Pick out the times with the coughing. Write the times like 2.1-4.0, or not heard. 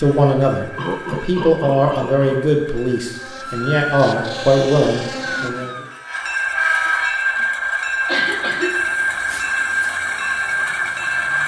0.8-2.5, 6.8-7.5, 8.1-8.8.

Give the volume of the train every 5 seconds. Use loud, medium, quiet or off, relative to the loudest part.
quiet, loud, loud.